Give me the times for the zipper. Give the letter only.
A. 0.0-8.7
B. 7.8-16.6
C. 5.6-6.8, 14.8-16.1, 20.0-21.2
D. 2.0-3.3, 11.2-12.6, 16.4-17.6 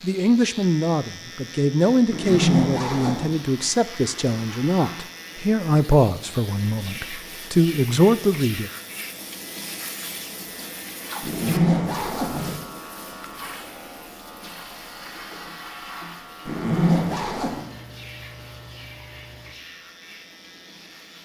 D.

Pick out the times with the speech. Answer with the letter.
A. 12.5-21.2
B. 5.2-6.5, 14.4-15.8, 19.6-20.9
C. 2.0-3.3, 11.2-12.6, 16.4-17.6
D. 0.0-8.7
D.